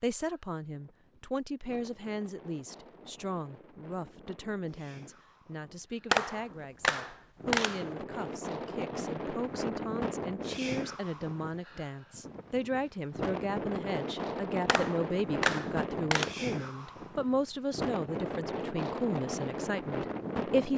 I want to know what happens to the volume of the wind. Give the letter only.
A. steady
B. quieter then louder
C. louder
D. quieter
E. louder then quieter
C.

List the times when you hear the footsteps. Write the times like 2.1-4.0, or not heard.
not heard.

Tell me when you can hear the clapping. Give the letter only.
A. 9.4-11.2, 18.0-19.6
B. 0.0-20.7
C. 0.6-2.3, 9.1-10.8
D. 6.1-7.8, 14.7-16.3
D.